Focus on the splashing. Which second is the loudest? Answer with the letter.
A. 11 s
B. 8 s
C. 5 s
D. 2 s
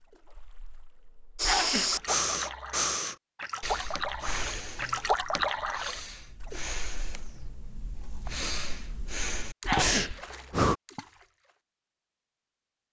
C.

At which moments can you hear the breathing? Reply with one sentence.
You can hear the breathing from 1.4 to 10.8 s.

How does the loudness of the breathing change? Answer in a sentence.
The loudness of the breathing goes down, then up.